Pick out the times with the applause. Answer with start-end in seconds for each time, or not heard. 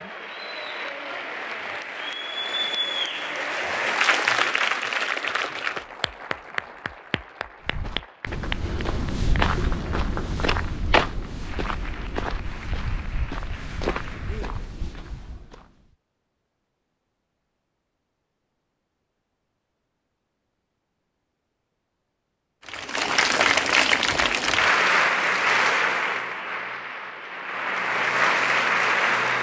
0.0-14.8, 22.6-29.3.